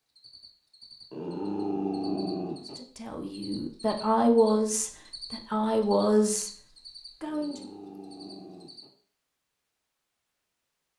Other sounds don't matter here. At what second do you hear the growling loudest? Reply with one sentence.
The volume of the growling peaks at 2 seconds.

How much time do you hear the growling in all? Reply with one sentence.
The growling can be heard for 3 seconds in total.